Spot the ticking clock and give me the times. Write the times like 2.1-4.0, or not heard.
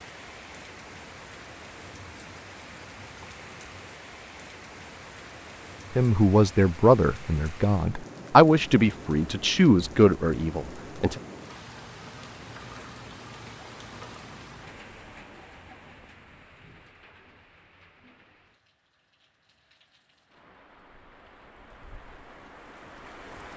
not heard.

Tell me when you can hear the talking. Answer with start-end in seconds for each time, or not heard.
6.0-11.2.